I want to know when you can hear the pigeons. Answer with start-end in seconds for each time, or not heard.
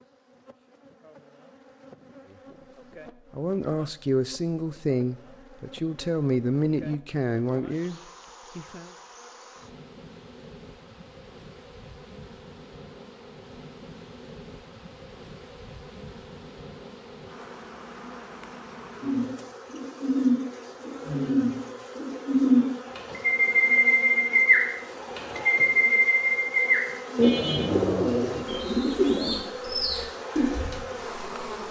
19.0-30.8.